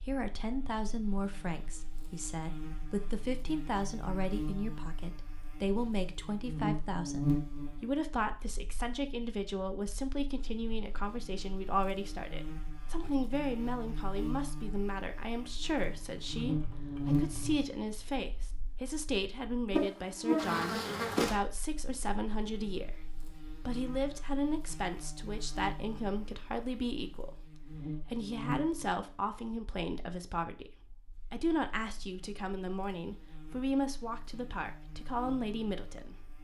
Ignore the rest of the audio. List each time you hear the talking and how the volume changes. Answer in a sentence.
You can hear the talking from 0.1 to 36.3 s, at a steady volume.